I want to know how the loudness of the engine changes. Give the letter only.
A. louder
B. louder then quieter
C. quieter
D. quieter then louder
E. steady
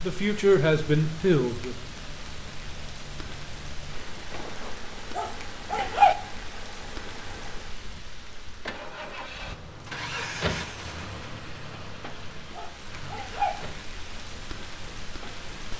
B.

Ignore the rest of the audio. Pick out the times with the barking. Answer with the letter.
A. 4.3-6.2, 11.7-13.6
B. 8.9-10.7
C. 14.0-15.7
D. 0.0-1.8
A.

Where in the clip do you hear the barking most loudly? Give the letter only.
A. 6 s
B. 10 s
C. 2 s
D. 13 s
A.